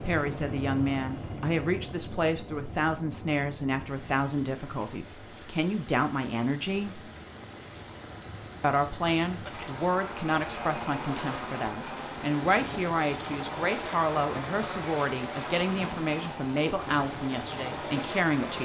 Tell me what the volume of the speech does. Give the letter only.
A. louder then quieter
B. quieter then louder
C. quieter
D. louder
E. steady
E.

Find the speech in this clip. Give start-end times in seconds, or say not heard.
0.0-7.0, 8.6-18.6.